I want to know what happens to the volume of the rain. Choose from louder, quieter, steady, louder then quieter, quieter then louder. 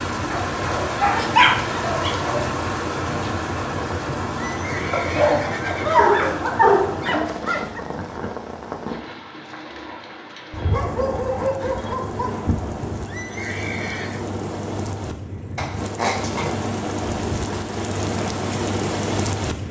quieter then louder.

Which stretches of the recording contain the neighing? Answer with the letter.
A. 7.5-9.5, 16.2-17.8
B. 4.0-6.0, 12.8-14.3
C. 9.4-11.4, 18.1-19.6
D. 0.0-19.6
B.